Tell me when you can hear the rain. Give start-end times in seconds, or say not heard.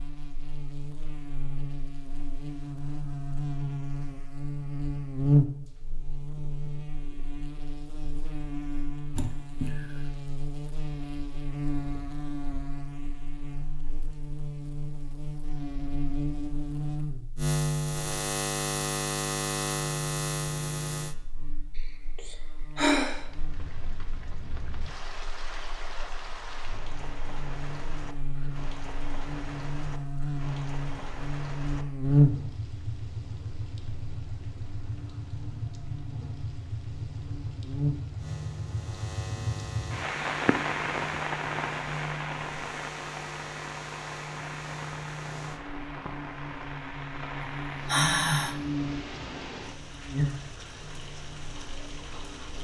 23.1-52.5.